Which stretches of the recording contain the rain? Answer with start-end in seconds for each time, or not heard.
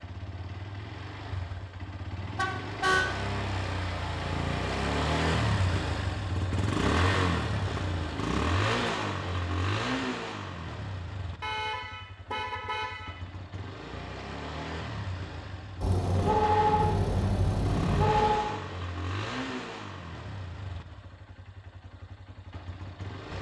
not heard.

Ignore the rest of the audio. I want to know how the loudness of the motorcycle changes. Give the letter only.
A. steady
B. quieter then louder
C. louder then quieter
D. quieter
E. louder
C.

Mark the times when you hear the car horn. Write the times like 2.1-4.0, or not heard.
2.2-3.0, 11.4-13.2, 15.8-18.5.